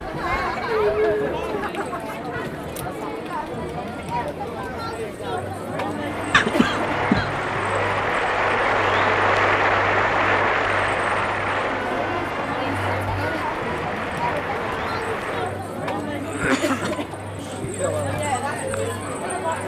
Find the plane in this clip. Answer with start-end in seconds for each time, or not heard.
5.9-15.6.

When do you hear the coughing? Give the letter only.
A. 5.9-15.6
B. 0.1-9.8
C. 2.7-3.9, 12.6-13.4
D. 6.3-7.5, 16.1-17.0
D.